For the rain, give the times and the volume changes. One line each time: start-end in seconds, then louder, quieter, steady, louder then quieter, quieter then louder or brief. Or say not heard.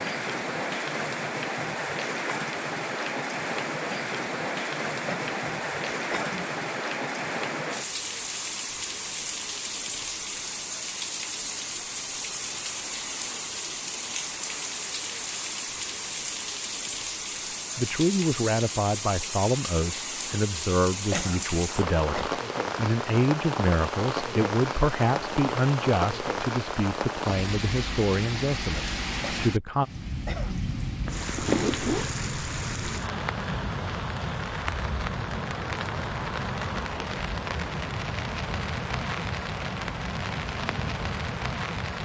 0.0-42.0 steady.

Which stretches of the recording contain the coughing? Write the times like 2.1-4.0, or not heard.
5.0-6.5, 21.1-22.2, 29.2-30.6.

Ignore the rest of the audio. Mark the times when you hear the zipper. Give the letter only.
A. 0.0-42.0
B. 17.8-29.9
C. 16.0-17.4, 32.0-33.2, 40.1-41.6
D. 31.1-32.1
D.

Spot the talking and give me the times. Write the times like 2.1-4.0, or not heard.
17.8-29.9.